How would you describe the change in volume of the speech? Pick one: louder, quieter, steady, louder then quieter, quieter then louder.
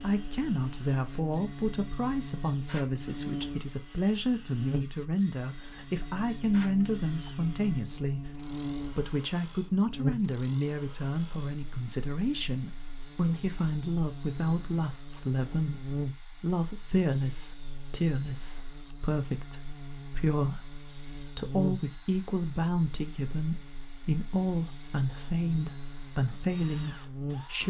steady.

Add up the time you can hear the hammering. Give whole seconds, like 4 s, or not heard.
not heard.